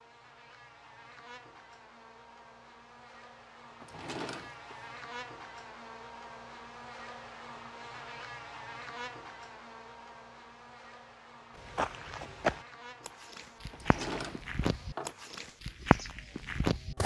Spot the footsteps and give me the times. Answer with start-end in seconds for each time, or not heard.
11.6-17.0.